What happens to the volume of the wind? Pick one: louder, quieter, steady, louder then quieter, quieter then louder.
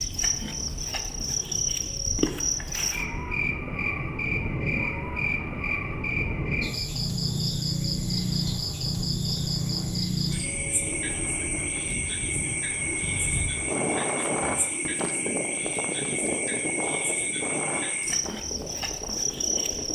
louder.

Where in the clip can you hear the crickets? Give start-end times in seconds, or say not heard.
0.0-19.9.